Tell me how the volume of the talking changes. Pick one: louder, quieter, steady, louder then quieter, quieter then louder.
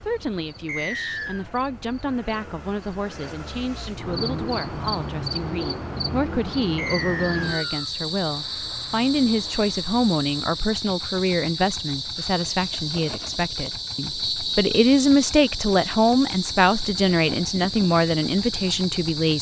louder.